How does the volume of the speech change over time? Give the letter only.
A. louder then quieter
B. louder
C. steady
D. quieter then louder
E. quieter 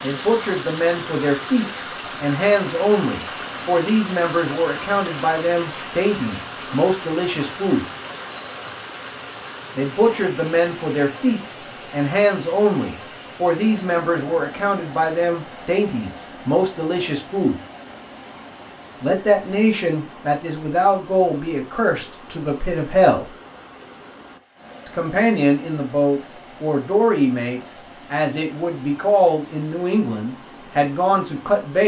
C.